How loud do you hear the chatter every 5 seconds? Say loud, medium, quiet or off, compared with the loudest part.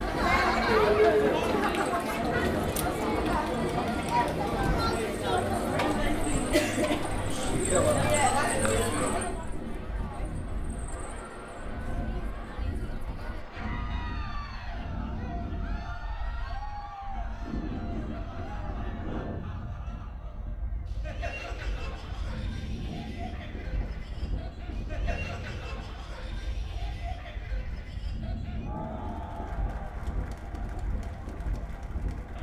loud, loud, quiet, quiet, quiet, quiet, quiet.